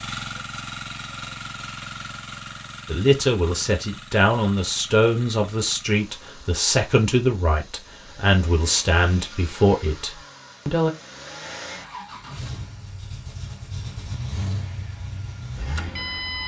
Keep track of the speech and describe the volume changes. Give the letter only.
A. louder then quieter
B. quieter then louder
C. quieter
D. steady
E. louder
D.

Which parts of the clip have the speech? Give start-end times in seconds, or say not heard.
2.9-10.9.